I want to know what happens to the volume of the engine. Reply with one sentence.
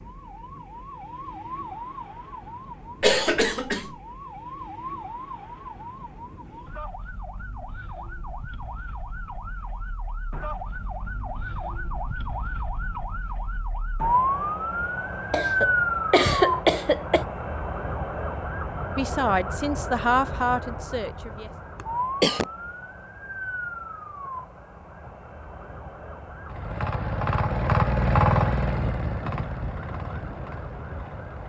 The loudness of the engine goes up, then down.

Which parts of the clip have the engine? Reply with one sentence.
You can hear the engine from 26.4 to 31.4 s.